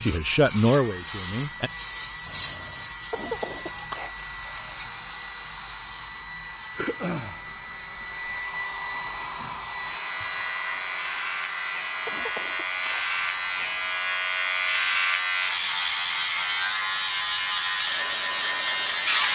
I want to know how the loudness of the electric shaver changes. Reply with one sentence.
The loudness of the electric shaver goes down, then up.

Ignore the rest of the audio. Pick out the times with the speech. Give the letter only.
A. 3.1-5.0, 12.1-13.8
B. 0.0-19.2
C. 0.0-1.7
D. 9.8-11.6
C.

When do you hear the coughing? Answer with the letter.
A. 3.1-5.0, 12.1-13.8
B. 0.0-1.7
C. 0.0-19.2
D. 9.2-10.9
A.